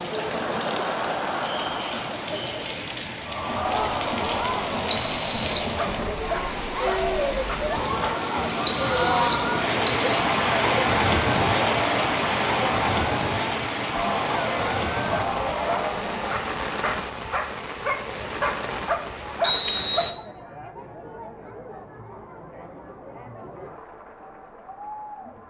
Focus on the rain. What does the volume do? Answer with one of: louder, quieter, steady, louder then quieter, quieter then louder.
louder then quieter.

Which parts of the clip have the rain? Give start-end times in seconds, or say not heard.
0.0-20.1.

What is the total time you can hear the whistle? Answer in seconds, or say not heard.
3 s.